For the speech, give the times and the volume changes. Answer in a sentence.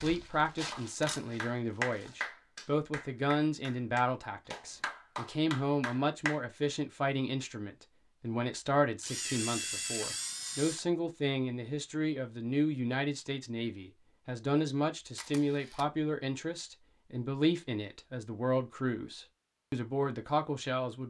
You can hear the speech from 0.0 to 21.0 s, at a steady volume.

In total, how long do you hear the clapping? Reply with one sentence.
You can hear the clapping for 6 seconds altogether.